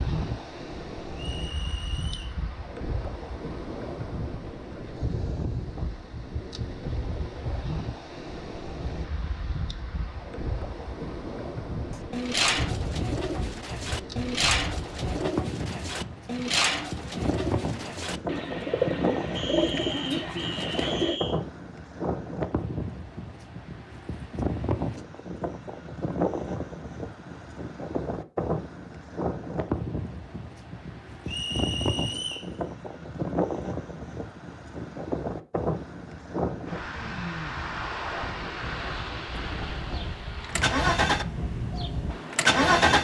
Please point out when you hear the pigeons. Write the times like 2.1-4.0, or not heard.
11.9-21.2.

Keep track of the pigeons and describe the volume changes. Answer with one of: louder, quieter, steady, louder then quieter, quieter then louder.
steady.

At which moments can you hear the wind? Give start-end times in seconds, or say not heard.
0.0-42.9.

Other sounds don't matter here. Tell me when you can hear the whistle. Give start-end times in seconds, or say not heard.
1.1-2.4, 19.4-21.4, 31.2-32.5.